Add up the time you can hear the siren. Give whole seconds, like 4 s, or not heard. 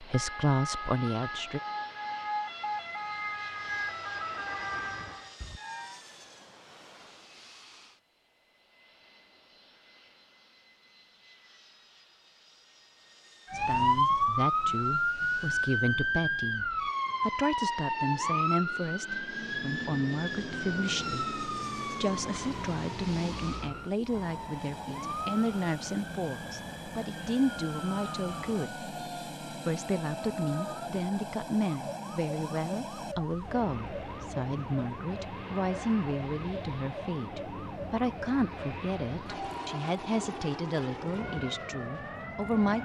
35 s.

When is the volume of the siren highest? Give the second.
14 s.